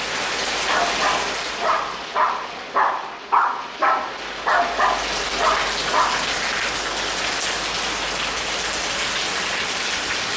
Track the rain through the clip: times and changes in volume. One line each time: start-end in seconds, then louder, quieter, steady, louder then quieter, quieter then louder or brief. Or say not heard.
0.0-10.3 quieter then louder.